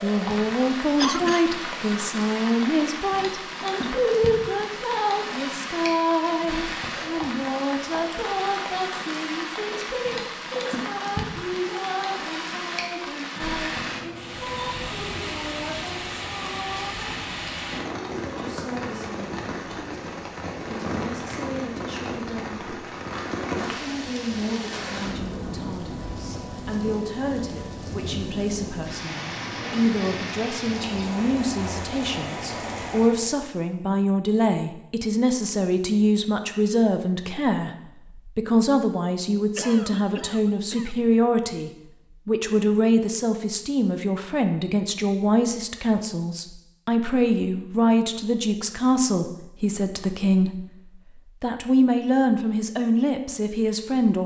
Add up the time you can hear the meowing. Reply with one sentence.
You can hear the meowing for 2 seconds altogether.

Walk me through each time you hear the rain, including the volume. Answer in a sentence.
You can hear the rain from 0.0 to 33.4 s, at a steady volume.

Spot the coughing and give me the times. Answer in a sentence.
You can hear the coughing from 0.9 to 1.6 s and from 39.5 to 41.1 s.